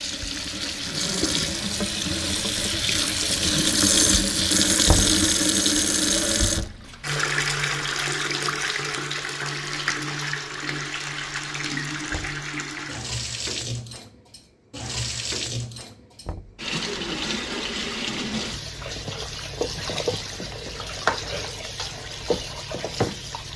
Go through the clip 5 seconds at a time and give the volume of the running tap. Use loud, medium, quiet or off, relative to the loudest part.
loud, loud, medium, medium, medium.